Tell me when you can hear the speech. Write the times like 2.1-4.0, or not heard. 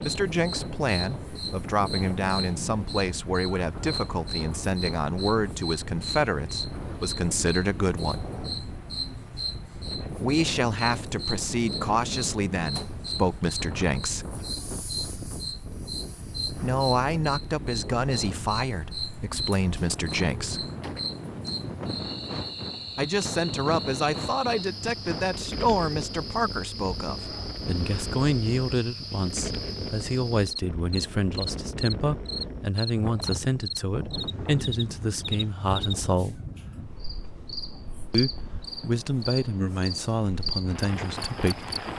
0.0-8.2, 10.2-14.3, 16.6-20.6, 22.9-36.4, 38.1-41.6.